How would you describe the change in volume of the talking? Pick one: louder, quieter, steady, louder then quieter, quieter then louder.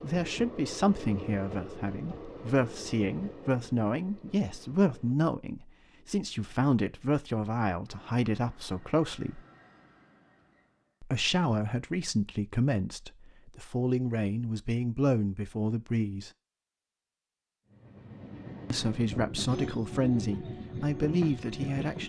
steady.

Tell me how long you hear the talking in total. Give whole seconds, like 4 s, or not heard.
18 s.